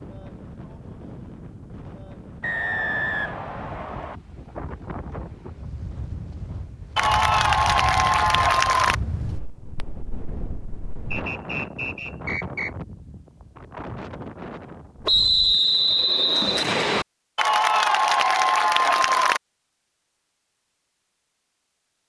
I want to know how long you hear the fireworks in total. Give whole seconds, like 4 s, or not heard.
not heard.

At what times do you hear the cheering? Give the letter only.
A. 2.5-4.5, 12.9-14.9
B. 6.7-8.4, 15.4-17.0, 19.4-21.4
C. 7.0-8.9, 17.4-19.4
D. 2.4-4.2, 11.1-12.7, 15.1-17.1
C.